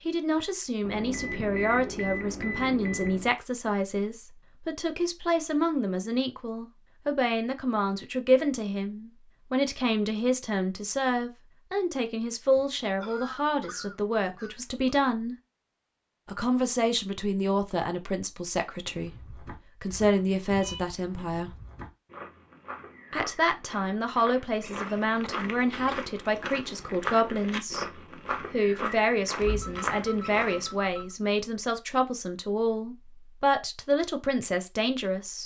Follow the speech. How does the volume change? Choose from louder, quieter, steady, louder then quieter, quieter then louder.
steady.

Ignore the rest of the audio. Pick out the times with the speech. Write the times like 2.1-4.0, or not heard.
0.1-15.3, 16.2-21.6, 23.1-35.4.